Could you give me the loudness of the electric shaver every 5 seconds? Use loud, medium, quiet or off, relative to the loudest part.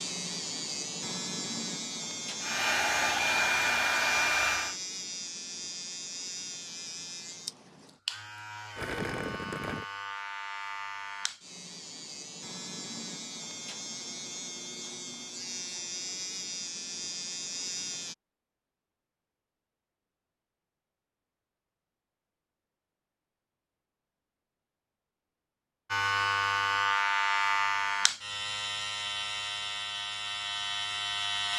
medium, medium, medium, medium, off, loud, loud.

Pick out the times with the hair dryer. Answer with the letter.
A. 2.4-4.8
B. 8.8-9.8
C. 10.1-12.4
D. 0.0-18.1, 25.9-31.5
A.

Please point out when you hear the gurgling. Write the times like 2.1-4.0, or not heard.
8.8-9.8.